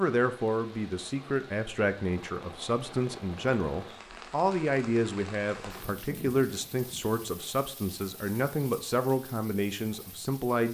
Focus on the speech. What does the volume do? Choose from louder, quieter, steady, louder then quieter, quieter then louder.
steady.